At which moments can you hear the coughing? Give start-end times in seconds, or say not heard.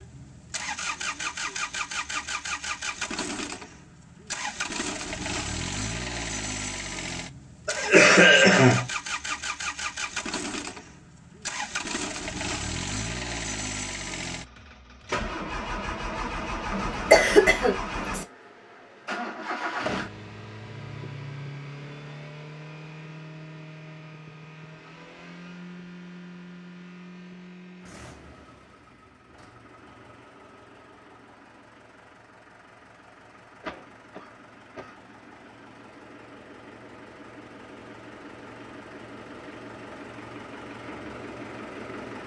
7.7-8.8, 16.7-18.2, 33.6-35.5.